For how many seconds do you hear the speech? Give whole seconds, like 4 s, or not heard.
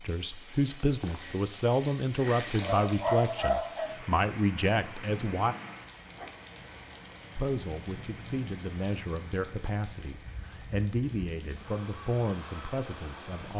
12 s.